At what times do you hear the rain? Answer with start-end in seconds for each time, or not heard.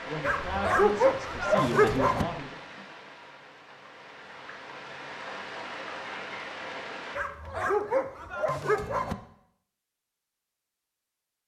0.0-7.2.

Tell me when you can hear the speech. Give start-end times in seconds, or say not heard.
0.1-2.5.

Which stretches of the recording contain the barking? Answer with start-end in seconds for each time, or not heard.
0.2-2.2, 7.2-9.2.